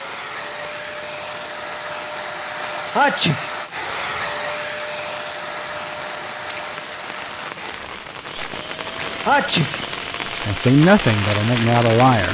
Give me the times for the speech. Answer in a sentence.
The speech can be heard from 10.4 to 12.2 s.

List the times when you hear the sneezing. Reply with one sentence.
The sneezing can be heard from 3.0 to 3.5 s and from 9.2 to 9.8 s.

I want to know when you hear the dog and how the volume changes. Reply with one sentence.
You can't hear the dog here.